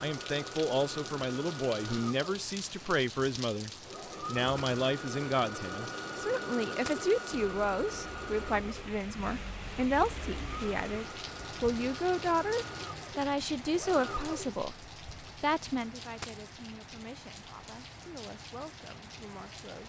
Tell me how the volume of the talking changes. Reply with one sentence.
The loudness of the talking goes down.